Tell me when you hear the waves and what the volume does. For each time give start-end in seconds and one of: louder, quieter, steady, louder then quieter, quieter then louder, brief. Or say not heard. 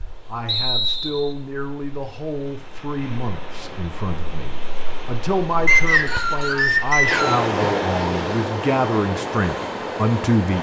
0.0-10.5 louder.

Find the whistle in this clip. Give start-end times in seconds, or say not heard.
0.5-1.4, 5.7-7.5.